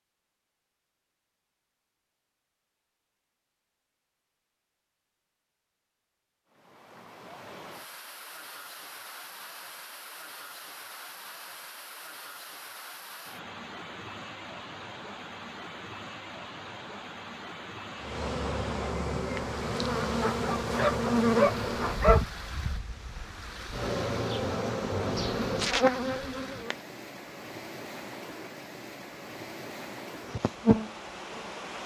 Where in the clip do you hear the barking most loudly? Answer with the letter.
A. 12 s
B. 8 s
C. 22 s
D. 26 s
C.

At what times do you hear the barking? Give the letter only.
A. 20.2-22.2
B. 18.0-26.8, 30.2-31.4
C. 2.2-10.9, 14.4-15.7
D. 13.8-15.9
A.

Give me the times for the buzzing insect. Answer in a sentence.
The buzzing insect can be heard from 18.0 to 26.8 s and from 30.2 to 31.4 s.